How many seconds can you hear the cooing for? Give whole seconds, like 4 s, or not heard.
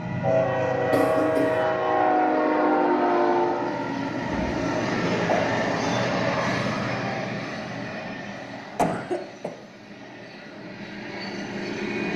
not heard.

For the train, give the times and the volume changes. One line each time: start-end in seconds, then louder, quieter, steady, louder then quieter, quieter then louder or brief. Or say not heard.
0.0-12.1 quieter.